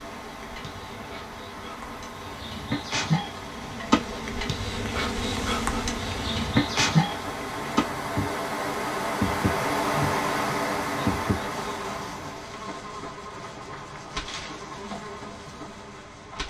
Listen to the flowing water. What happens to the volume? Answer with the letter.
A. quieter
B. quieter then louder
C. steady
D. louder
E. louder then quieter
D.